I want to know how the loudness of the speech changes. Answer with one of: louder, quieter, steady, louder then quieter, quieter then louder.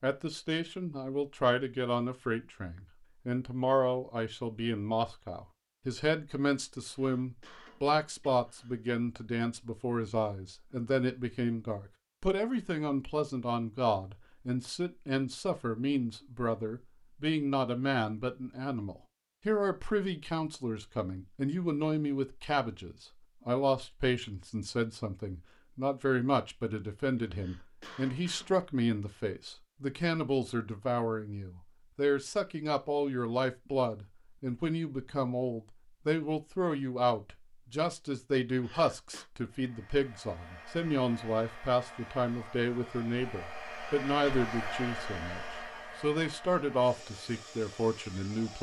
steady.